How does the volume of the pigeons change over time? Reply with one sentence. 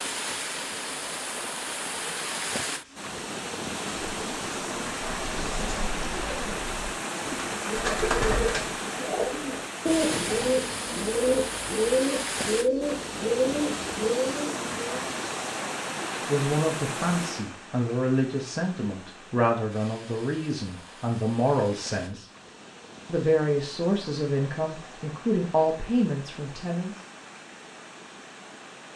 The volume of the pigeons goes up.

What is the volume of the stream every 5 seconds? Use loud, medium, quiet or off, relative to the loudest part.
loud, loud, loud, loud, quiet, quiet.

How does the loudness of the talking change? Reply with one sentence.
The loudness of the talking stays about the same.